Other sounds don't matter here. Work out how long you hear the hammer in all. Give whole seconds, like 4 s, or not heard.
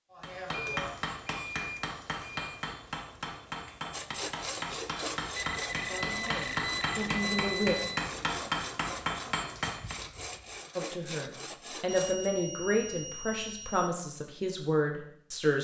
10 s.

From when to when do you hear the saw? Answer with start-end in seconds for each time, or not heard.
3.9-12.3.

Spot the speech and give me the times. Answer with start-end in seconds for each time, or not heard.
5.7-7.8, 10.8-15.6.